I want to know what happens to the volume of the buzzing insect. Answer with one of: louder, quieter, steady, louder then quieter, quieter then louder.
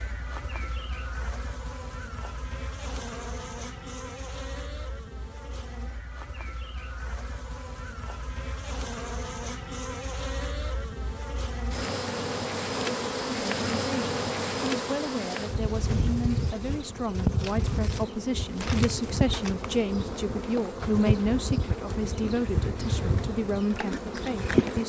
louder.